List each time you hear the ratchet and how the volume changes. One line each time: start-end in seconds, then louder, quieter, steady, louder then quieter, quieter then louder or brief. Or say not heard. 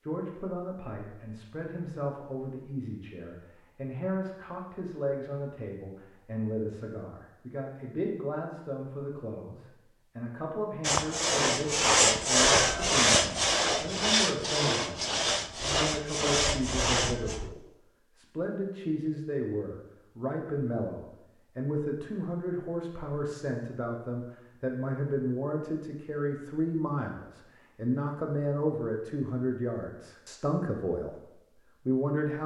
not heard.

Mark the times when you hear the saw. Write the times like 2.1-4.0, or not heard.
10.8-17.6.